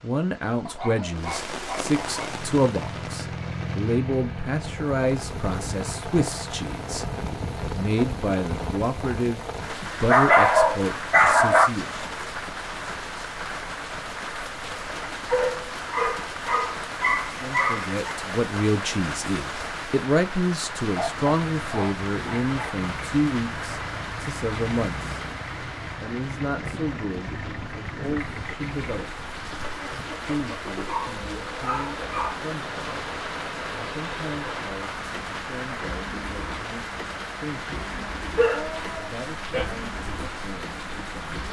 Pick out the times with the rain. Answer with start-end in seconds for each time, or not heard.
0.0-41.4.